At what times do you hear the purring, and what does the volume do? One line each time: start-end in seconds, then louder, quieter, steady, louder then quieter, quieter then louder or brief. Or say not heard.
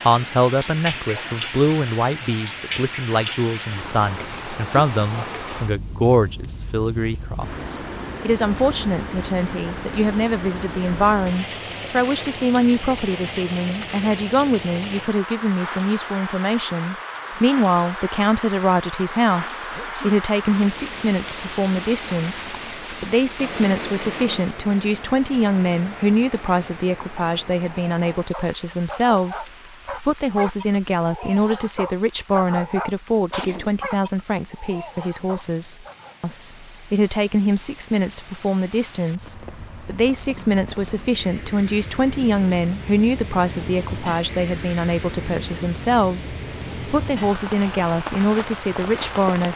not heard.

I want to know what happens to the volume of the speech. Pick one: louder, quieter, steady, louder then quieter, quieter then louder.
steady.